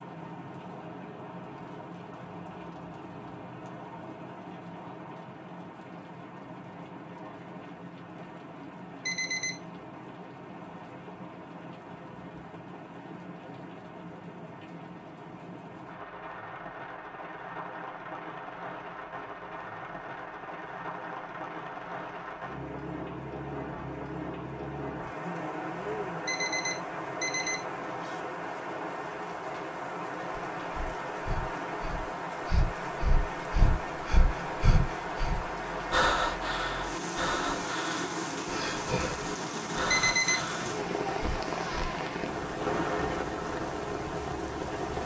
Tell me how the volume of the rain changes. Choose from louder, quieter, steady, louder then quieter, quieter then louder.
louder.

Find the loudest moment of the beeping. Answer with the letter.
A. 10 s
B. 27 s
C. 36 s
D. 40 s
D.